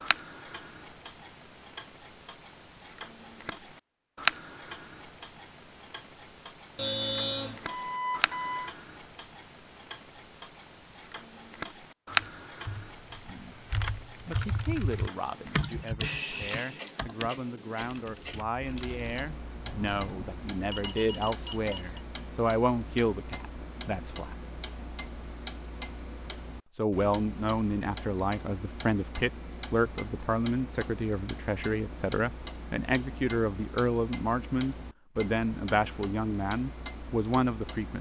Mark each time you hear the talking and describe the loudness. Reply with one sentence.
You can hear the talking from 14.2 to 24.4 s, getting louder; and from 26.8 to 37.9 s, at a steady volume.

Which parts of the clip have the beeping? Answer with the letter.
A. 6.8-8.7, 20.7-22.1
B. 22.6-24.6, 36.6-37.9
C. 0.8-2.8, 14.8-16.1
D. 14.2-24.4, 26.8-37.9
A.